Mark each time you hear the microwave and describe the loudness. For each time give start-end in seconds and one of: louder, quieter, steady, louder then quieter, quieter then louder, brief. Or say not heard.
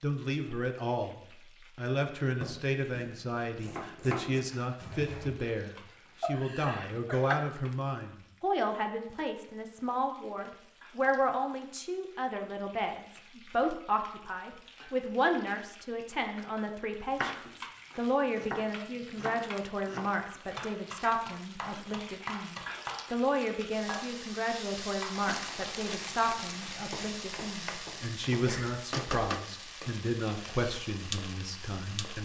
not heard.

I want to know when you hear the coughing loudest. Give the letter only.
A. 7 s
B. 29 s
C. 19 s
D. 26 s
A.